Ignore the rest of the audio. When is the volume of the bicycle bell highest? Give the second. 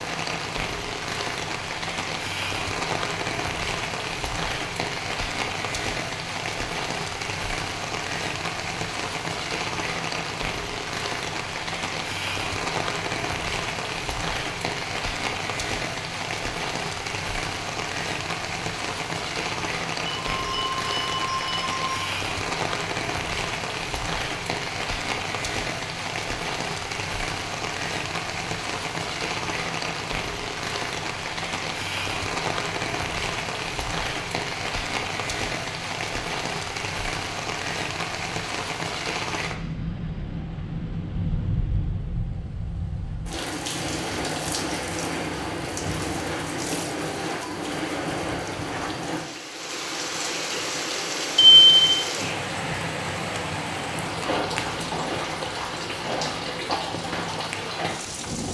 52 s.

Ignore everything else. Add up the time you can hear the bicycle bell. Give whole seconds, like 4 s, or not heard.
3 s.